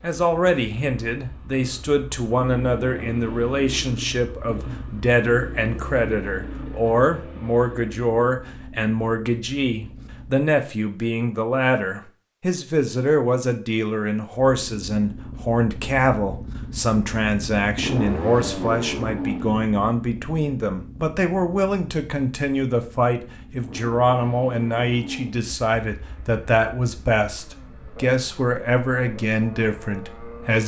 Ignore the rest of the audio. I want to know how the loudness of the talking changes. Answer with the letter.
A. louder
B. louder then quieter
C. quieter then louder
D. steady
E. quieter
D.